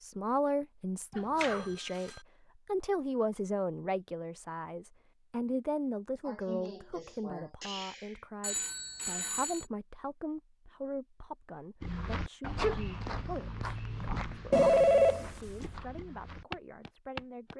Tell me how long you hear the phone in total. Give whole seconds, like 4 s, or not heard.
3 s.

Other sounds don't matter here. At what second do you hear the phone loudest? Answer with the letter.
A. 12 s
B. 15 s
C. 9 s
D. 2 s
B.